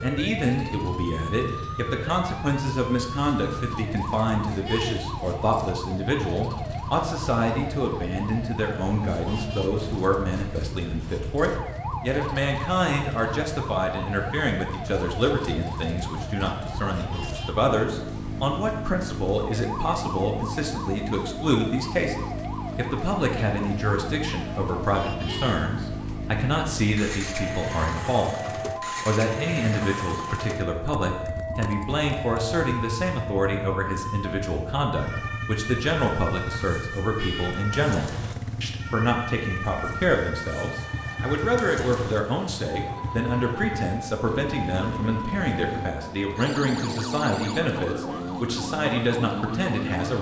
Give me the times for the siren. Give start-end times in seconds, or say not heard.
0.0-50.1.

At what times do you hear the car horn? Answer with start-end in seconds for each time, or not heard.
4.6-5.1, 25.2-25.8, 37.1-37.6.